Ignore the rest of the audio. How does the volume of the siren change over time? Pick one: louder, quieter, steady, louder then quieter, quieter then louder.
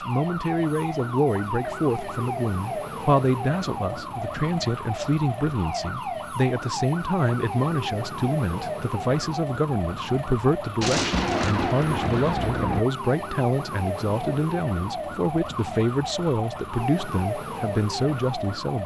steady.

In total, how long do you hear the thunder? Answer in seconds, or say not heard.
2 s.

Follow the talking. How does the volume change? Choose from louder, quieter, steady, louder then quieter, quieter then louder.
steady.